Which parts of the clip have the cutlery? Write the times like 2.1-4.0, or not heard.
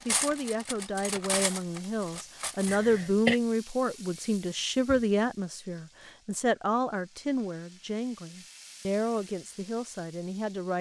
0.0-2.8.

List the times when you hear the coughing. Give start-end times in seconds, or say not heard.
2.6-3.4.